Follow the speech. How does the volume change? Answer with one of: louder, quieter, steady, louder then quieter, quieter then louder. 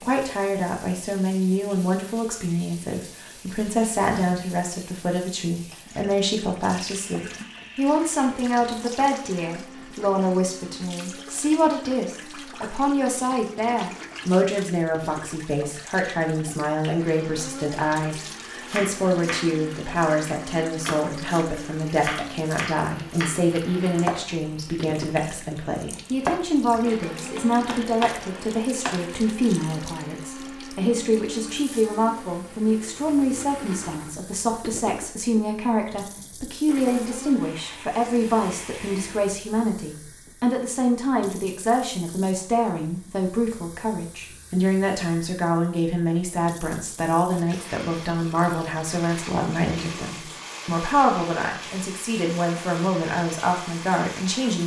steady.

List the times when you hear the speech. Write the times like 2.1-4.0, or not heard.
0.0-54.6.